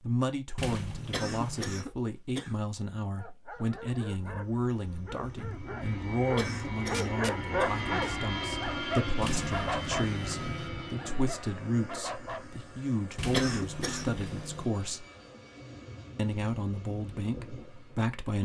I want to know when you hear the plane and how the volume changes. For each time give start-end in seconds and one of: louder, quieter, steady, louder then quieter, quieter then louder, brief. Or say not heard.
4.2-18.1 louder then quieter.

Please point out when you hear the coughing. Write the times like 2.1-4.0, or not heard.
1.1-2.5, 6.3-7.8, 13.2-14.2.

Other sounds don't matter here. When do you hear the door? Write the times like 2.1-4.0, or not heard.
0.6-1.8, 9.2-10.7, 13.2-14.7.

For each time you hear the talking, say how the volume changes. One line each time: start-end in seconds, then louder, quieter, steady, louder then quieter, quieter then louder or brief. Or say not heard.
0.0-15.1 steady
16.1-18.3 brief.